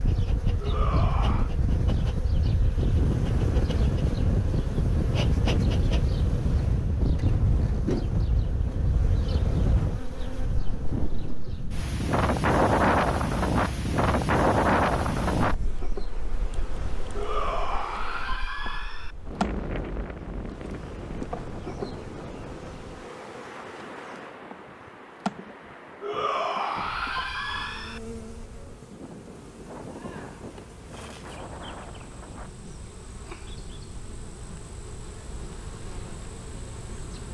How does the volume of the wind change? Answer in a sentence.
The volume of the wind goes down.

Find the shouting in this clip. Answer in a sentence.
You can hear the shouting from 0.6 to 1.5 s, from 17.1 to 19.1 s and from 26.0 to 28.0 s.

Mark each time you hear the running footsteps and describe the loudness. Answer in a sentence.
You can't hear the running footsteps here.